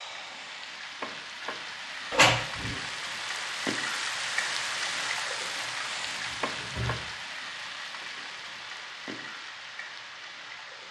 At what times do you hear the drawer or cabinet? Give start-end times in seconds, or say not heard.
2.1-2.8, 5.5-7.0.